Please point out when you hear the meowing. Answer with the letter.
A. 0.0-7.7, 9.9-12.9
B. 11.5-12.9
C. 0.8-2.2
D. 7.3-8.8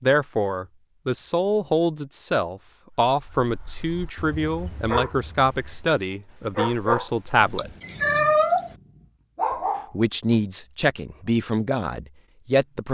D.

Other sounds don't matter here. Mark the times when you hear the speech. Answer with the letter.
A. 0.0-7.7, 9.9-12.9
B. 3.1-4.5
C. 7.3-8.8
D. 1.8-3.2
A.